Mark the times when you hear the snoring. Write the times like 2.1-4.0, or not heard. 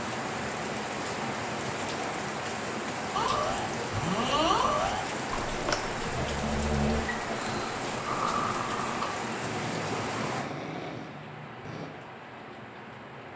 3.1-11.9.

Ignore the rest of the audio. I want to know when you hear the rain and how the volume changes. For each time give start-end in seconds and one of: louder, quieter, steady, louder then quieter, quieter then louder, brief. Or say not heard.
0.0-13.3 quieter.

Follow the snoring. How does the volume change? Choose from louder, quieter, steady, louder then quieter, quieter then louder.
quieter.